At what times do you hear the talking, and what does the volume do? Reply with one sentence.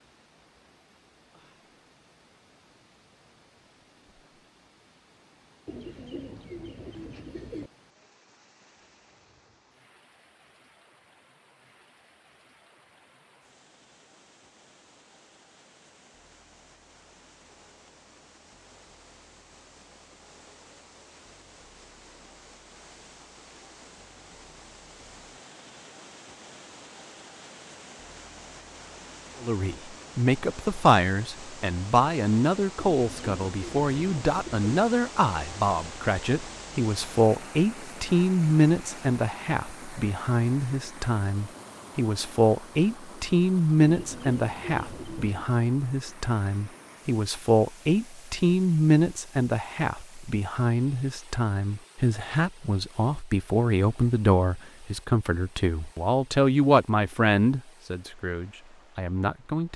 You can hear the talking from 29.4 to 59.7 s, at a steady volume.